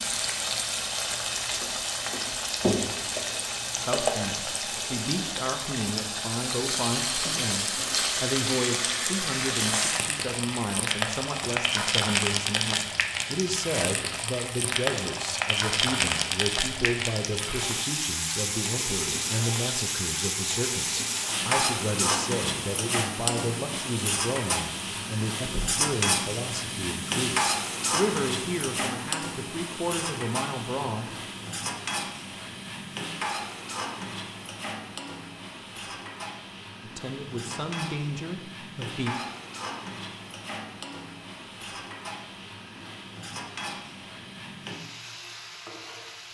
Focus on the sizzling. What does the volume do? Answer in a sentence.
The loudness of the sizzling goes down.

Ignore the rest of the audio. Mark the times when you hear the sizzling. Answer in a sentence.
You can hear the sizzling from 0.0 to 46.2 s.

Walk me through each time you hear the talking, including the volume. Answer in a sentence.
The talking can be heard from 3.9 to 31.1 s, at a steady volume; and briefly from 36.8 to 39.1 s.